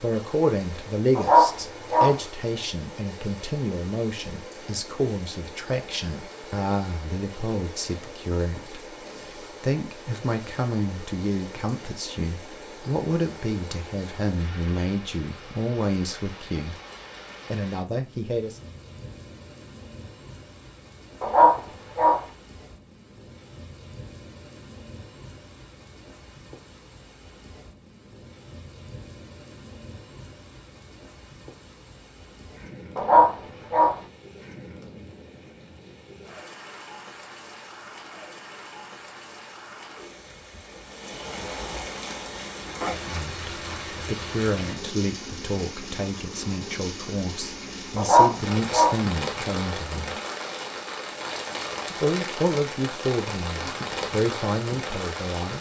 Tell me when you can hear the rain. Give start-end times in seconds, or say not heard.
0.0-55.5.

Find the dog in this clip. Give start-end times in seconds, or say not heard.
1.1-2.1, 21.2-22.2, 33.0-34.0, 48.0-49.0.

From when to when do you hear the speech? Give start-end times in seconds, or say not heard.
0.0-16.8, 17.5-18.6, 43.0-50.1, 51.9-55.5.